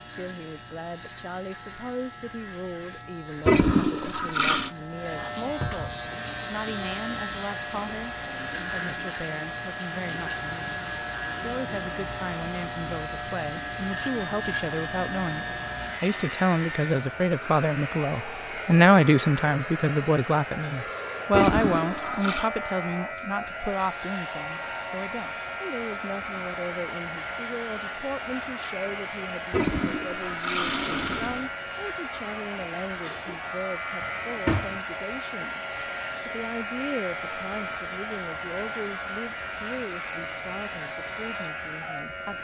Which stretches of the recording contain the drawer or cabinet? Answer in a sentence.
The drawer or cabinet can be heard from 5.6 to 6.0 s and from 34.0 to 34.8 s.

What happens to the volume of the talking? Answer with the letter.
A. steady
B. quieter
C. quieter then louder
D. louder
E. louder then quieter
E.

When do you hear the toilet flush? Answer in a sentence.
The toilet flush can be heard from 3.5 to 4.7 s, from 21.3 to 22.5 s and from 29.5 to 31.5 s.